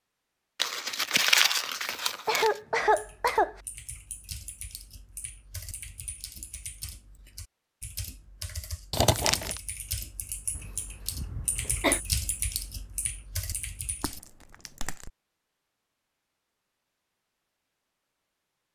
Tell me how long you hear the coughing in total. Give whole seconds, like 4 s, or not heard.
3 s.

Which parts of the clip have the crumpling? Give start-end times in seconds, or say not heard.
0.6-2.5, 8.9-9.6, 14.0-15.1.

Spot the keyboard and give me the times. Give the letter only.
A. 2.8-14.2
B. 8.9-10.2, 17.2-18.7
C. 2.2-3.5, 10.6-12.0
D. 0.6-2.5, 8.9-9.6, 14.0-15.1
A.